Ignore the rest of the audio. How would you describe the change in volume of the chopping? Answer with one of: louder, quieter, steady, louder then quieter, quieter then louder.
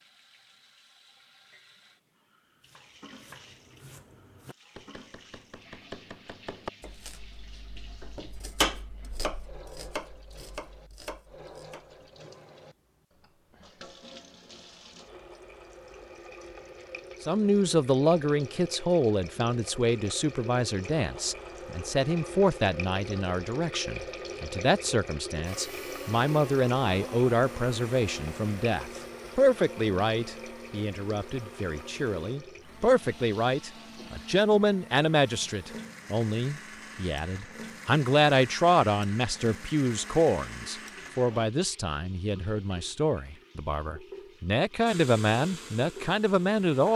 louder then quieter.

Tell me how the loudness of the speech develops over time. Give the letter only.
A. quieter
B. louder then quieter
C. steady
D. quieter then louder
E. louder
C.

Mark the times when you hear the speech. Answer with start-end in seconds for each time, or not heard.
17.2-46.9.